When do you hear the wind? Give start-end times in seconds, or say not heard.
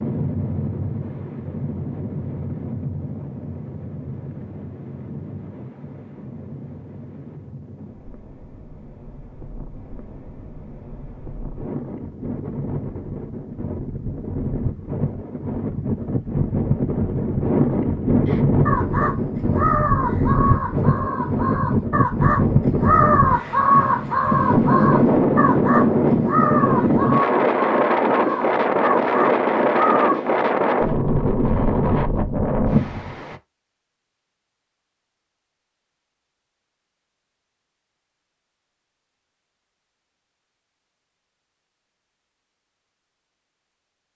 0.0-33.4.